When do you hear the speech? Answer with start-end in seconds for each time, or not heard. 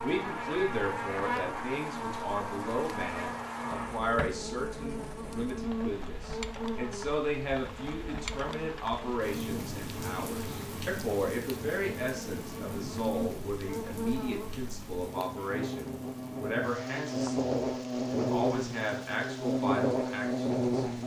0.0-20.9.